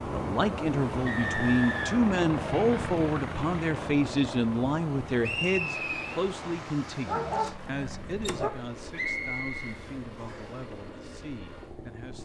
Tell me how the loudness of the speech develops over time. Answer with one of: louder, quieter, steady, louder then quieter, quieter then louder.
quieter.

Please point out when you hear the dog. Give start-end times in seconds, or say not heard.
7.0-8.5.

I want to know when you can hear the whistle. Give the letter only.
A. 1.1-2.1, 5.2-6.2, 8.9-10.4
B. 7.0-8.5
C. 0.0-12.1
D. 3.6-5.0
A.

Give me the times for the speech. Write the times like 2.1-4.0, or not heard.
0.0-12.1.